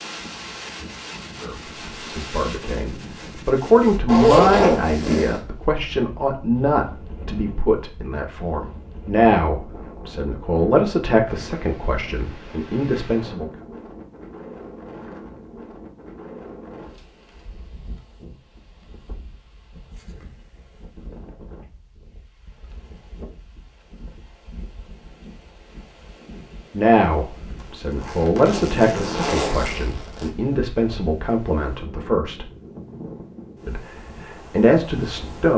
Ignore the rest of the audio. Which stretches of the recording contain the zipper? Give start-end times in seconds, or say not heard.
4.0-5.4, 28.0-30.3.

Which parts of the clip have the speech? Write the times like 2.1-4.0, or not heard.
1.4-13.5, 26.7-32.5, 33.6-35.5.